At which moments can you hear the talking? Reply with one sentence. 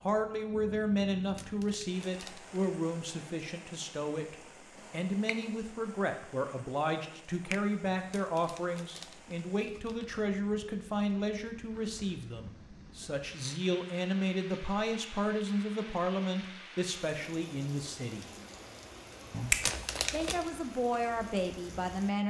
The talking can be heard from 0.0 to 18.3 s and from 20.1 to 22.2 s.